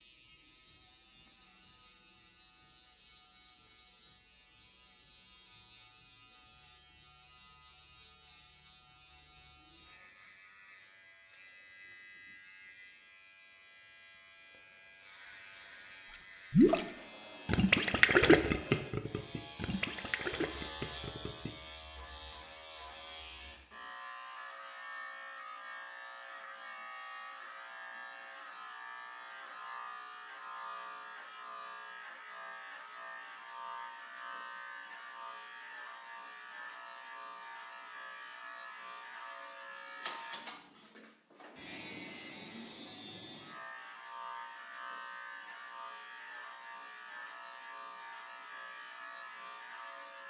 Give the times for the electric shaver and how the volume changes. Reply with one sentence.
The electric shaver can be heard from 0.0 to 50.2 s, getting louder.